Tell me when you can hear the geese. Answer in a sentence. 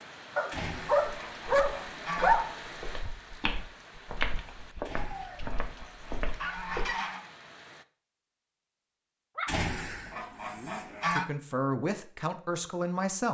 The geese can be heard from 0.5 to 2.4 s, from 4.8 to 7.3 s and from 9.4 to 11.2 s.